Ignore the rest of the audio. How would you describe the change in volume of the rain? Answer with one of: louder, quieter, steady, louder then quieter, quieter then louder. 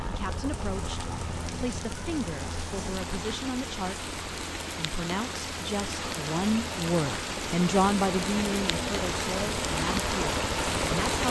louder.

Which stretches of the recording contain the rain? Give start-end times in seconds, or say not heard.
0.0-11.2.